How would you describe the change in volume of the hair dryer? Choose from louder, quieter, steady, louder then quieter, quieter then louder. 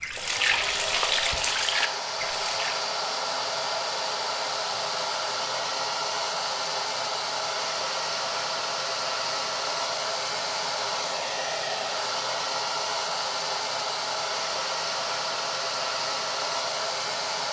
steady.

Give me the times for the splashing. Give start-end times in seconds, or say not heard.
0.0-2.9.